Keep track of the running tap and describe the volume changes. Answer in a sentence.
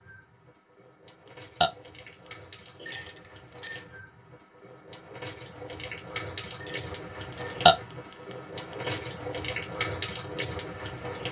The volume of the running tap goes up.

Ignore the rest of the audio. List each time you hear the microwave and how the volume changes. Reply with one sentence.
You can't hear the microwave here.